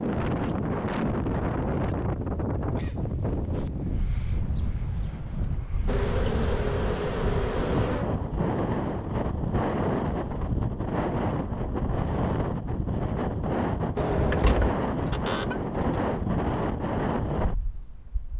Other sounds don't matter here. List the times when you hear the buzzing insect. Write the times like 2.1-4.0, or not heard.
5.8-8.1.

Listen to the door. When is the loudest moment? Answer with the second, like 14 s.
14 s.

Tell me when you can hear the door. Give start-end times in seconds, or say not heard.
13.9-16.1.